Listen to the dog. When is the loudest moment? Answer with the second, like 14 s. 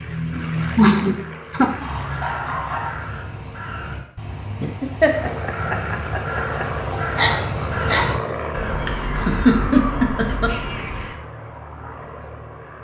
7 s.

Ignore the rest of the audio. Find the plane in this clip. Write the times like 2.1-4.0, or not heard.
0.0-3.2, 5.0-12.7.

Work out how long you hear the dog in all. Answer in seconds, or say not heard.
2 s.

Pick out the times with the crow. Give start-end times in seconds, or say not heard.
1.6-11.2.